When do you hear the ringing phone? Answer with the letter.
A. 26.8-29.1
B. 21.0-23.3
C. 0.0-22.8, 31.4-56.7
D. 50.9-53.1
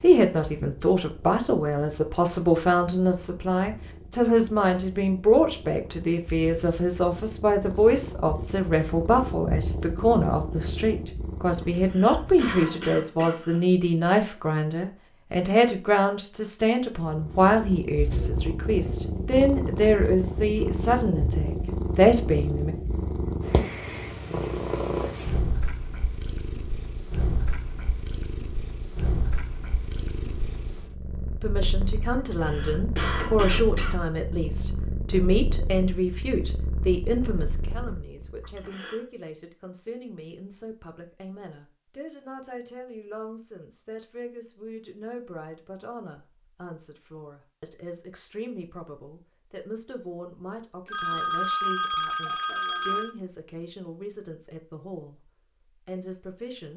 D.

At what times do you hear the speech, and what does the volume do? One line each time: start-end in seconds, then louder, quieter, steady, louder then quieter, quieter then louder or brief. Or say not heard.
0.0-22.8 steady
31.4-56.7 quieter.